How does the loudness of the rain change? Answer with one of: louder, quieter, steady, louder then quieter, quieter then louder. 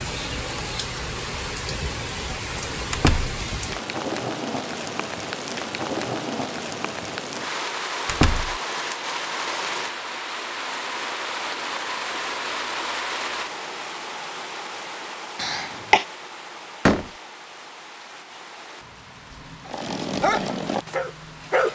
quieter.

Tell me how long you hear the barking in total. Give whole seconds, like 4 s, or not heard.
2 s.